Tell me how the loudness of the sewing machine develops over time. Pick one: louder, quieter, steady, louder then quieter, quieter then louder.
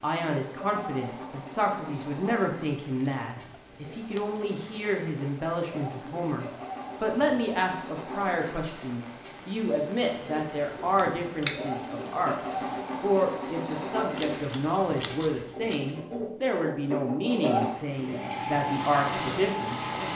louder.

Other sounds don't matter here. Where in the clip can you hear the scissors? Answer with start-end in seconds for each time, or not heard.
3.0-4.8, 10.4-11.6, 14.1-15.9.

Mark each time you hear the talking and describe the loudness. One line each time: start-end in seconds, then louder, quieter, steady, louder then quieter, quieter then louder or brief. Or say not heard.
0.0-19.9 steady.